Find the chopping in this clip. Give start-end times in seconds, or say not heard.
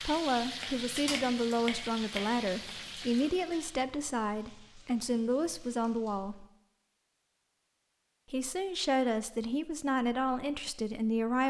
0.6-2.8.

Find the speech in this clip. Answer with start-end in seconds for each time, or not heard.
0.0-6.5, 8.3-11.4.